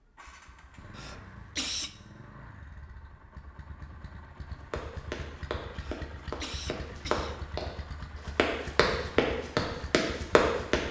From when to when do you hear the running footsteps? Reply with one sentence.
You can hear the running footsteps from 4.7 to 10.8 s.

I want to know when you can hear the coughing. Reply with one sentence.
The coughing can be heard from 0.9 to 1.9 s and from 5.8 to 7.4 s.